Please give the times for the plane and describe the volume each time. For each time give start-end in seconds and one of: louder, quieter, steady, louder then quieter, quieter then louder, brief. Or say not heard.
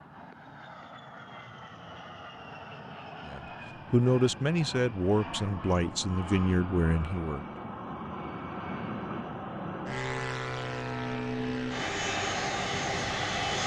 0.0-13.6 louder.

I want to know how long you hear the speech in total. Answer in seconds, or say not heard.
4 s.